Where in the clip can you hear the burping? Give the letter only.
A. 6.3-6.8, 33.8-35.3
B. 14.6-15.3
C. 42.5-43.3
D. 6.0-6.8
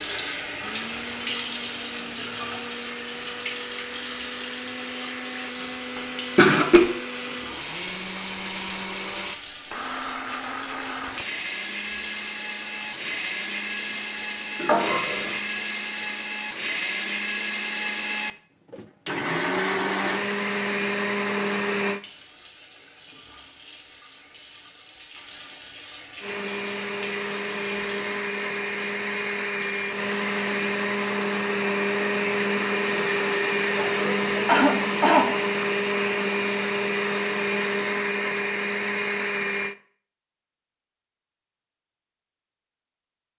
B.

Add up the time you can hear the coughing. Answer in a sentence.
The coughing can be heard for 2 seconds in total.